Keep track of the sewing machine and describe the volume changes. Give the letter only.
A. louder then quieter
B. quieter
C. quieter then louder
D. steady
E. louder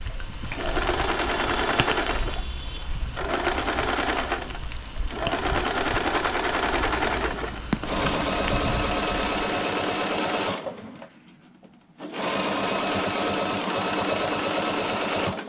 D.